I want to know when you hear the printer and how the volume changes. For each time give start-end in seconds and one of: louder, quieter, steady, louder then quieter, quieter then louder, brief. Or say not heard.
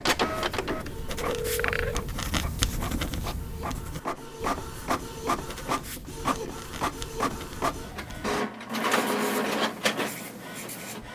0.0-11.1 louder.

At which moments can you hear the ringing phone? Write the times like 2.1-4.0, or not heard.
0.6-2.1.